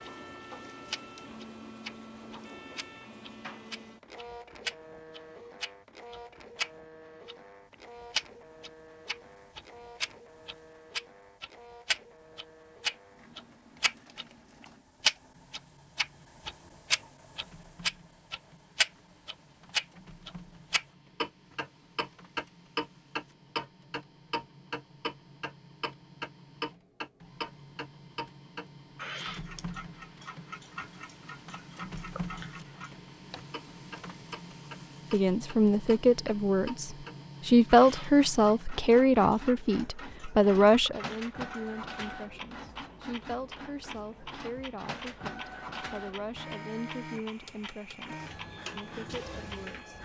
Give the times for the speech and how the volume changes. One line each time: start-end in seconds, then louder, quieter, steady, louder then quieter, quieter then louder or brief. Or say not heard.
35.1-50.0 quieter.